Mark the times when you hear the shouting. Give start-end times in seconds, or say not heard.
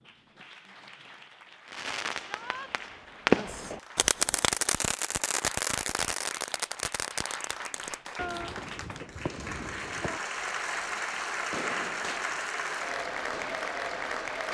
2.2-2.7.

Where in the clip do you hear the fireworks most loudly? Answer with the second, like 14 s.
3 s.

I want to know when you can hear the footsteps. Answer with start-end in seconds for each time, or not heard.
not heard.